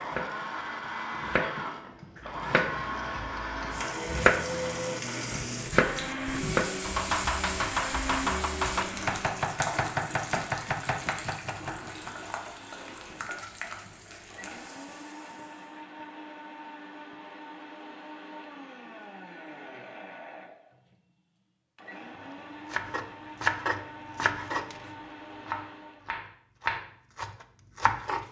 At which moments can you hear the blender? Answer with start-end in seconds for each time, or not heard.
0.0-26.1.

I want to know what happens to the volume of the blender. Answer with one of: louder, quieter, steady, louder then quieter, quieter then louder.
quieter.